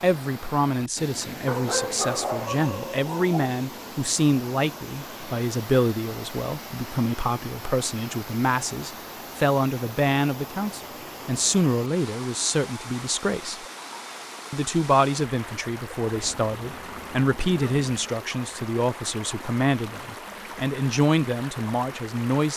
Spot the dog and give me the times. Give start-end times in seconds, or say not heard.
1.4-3.5, 16.1-17.9.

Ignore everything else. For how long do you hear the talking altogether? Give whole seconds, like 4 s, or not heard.
22 s.